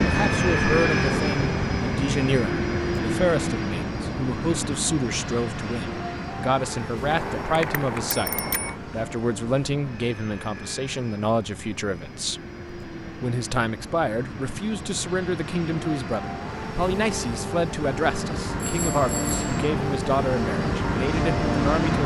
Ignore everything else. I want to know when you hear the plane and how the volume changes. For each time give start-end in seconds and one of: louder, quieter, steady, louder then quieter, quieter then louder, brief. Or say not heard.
0.0-22.0 quieter then louder.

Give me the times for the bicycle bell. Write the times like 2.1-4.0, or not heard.
7.1-8.8, 18.6-19.6.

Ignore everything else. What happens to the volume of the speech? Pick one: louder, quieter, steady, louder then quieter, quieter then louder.
steady.